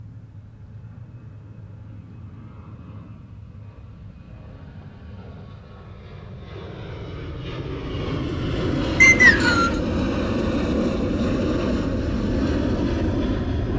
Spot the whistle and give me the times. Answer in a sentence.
The whistle can be heard from 9.0 to 9.8 s.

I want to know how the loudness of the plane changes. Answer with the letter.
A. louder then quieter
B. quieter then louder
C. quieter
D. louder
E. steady
D.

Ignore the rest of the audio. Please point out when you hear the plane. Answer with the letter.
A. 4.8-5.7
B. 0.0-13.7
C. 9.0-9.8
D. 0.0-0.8
B.